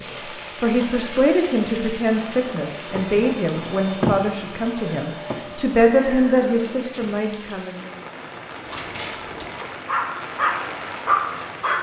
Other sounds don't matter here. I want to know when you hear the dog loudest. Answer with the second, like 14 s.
11 s.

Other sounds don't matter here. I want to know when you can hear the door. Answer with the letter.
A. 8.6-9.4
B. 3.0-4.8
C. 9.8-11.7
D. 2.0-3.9
A.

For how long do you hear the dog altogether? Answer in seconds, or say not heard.
2 s.